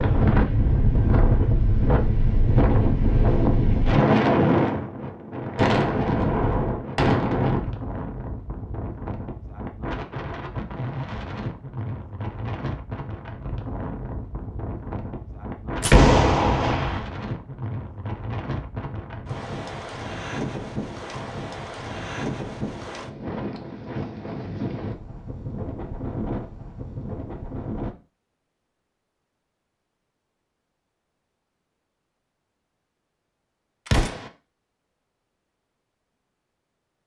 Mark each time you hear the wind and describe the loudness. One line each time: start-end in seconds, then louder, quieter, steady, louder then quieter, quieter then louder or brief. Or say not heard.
0.0-27.9 quieter.